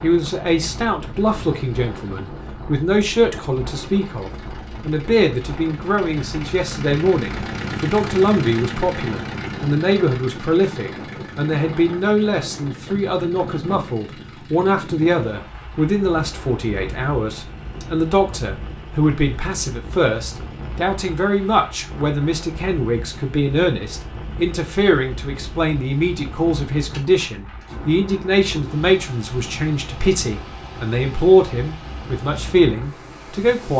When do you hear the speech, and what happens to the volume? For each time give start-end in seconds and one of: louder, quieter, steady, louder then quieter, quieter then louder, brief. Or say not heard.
0.0-33.7 steady.